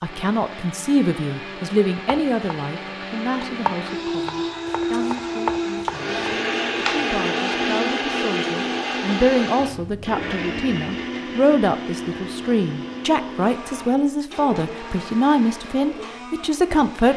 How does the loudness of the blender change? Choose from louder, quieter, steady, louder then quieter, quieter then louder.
louder then quieter.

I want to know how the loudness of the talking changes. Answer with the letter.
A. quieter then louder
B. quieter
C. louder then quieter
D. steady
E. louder
A.